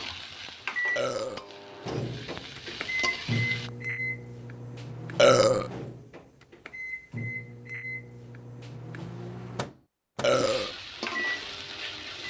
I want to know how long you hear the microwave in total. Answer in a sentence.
The microwave can be heard for 12 seconds in total.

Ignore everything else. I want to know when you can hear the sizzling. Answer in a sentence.
The sizzling can be heard from 0.0 to 3.7 s and from 10.3 to 12.2 s.